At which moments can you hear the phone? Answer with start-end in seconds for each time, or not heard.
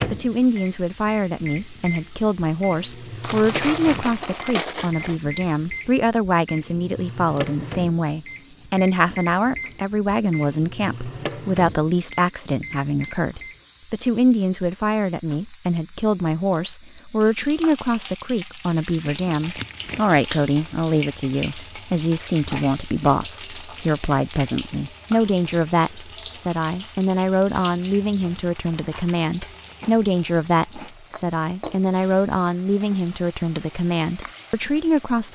not heard.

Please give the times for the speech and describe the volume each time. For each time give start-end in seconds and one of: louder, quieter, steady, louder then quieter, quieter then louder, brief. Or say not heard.
0.1-35.3 steady.